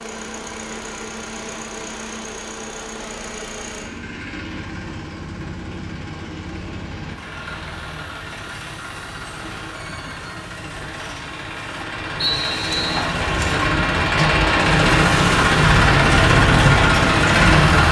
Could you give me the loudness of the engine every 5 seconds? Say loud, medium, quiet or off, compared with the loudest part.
quiet, quiet, medium, loud.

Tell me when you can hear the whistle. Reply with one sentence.
You can hear the whistle from 12.2 to 13.1 s.